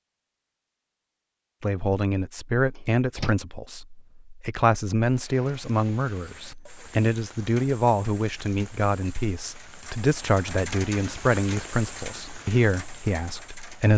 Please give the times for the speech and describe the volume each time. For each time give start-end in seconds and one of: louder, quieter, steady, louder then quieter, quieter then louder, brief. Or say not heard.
1.6-13.9 steady.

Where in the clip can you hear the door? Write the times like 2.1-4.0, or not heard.
2.8-3.4.